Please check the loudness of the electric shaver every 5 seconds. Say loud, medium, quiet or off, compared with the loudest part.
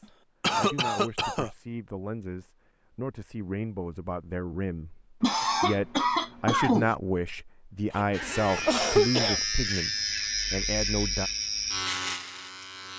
off, loud, loud.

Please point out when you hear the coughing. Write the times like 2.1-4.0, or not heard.
0.4-1.5, 5.2-7.0, 8.7-9.4.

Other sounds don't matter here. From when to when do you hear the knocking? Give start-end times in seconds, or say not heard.
not heard.